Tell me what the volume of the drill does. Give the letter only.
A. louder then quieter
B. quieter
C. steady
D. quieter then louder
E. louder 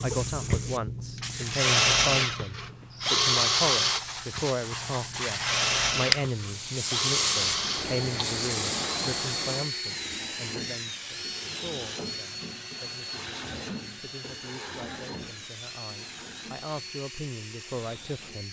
B.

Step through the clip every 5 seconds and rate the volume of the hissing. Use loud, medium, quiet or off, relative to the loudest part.
medium, loud, off, off.